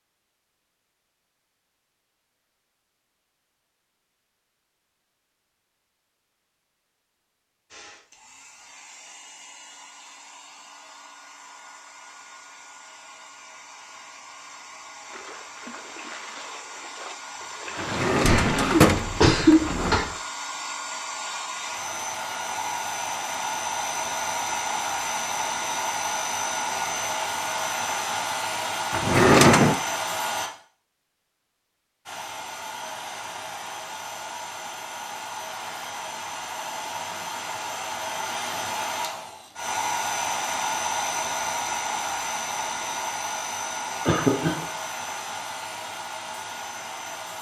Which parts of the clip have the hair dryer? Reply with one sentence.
You can hear the hair dryer from 7.7 to 30.5 s and from 32.0 to 47.3 s.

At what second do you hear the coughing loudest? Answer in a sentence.
The volume of the coughing peaks at 19 seconds.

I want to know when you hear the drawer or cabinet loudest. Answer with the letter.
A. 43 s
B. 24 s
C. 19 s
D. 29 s
D.